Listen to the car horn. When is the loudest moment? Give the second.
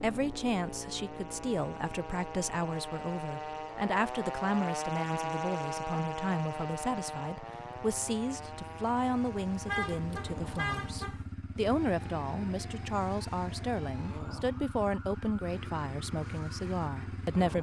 10 s.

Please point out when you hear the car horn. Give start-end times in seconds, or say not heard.
9.7-11.2.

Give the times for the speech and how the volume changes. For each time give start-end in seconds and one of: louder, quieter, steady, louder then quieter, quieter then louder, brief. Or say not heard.
0.0-17.5 steady.